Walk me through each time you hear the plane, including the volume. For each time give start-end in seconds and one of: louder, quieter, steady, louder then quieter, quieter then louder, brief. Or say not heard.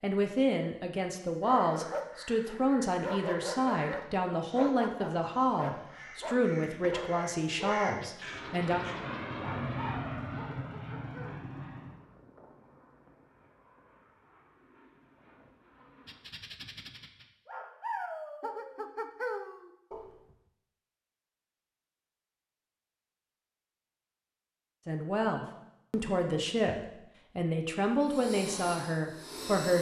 8.2-16.4 quieter
28.1-29.7 brief.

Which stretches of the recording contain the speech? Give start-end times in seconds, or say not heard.
0.0-8.8, 24.9-29.7.